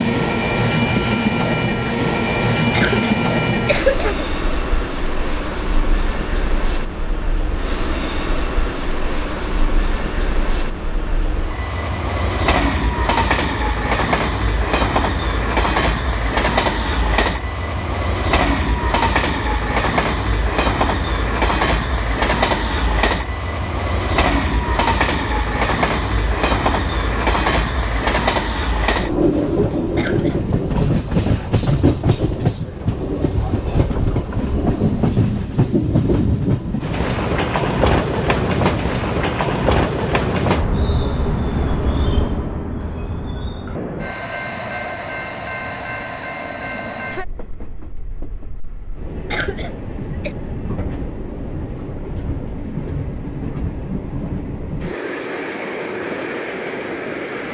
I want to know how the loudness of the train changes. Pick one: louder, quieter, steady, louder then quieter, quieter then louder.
quieter.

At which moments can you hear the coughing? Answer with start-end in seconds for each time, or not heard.
2.7-4.3, 29.9-30.6, 49.3-50.4.